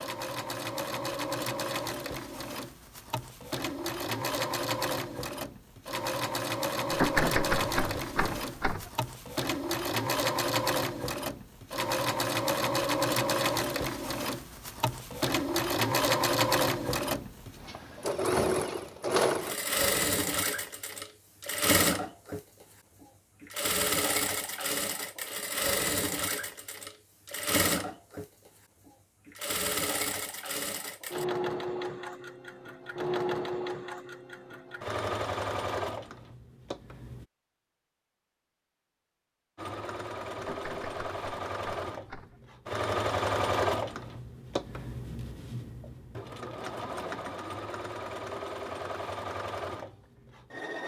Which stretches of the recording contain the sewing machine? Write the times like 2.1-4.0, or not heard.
0.0-37.2, 39.5-50.8.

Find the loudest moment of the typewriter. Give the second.
7 s.